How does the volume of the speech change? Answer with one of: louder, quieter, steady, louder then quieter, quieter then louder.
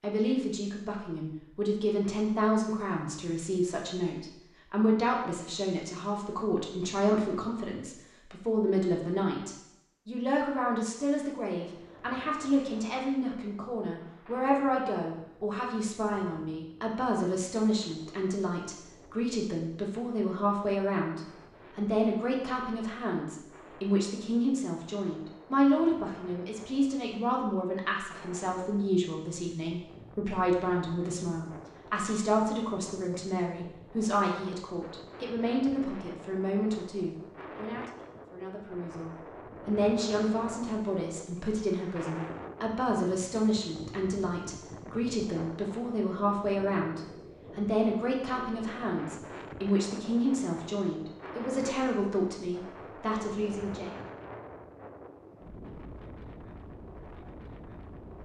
steady.